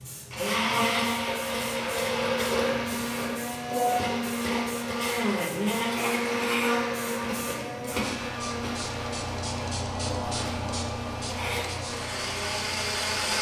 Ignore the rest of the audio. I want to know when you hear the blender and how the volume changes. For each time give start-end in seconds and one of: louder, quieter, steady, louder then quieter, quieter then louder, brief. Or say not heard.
0.3-13.3 quieter.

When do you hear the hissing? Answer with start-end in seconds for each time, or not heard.
0.0-13.3.